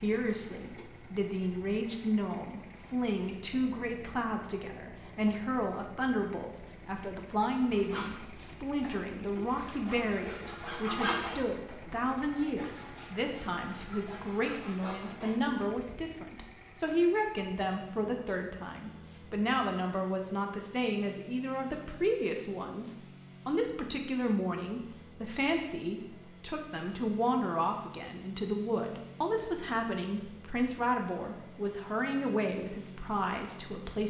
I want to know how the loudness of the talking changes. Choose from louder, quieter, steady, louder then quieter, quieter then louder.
steady.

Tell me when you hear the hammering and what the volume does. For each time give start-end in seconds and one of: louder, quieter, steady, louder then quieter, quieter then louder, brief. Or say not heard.
not heard.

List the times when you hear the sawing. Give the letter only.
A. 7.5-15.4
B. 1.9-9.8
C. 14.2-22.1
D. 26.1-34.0
A.